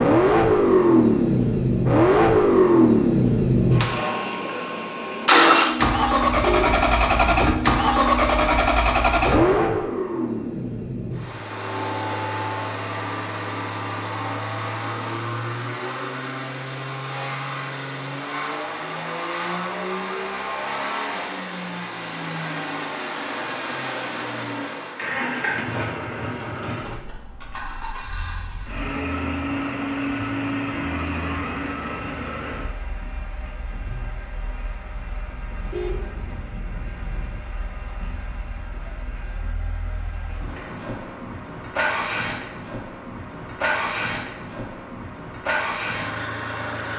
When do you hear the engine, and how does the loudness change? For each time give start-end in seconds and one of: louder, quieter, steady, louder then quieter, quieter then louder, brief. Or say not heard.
0.0-46.9 quieter.